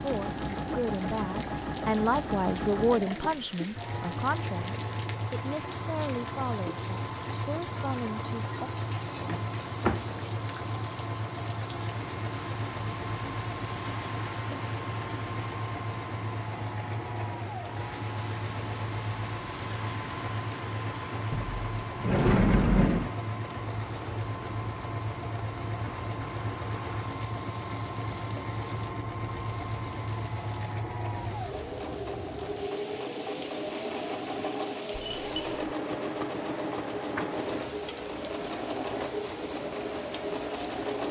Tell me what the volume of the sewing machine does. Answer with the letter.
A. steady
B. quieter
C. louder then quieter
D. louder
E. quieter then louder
A.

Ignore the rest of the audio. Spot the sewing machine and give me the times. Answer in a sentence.
You can hear the sewing machine from 0.0 to 41.0 s.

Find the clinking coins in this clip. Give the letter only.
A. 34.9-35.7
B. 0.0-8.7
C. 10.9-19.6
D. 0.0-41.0
A.